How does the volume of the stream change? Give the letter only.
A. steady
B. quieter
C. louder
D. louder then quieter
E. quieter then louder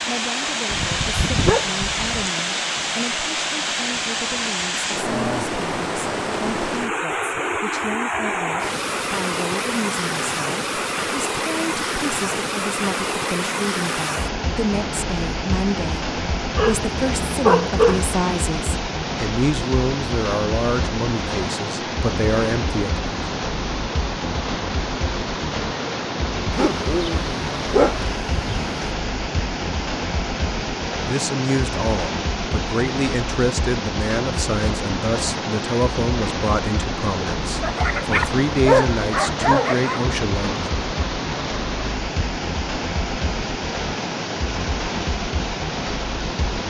A.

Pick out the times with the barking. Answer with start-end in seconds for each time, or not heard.
0.7-2.3, 16.6-18.1, 26.5-28.7, 37.6-40.0.